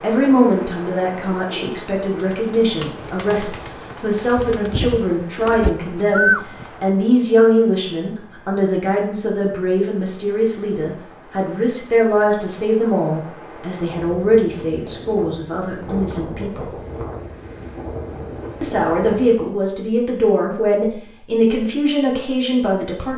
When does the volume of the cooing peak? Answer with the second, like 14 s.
6 s.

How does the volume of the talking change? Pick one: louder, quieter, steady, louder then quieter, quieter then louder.
steady.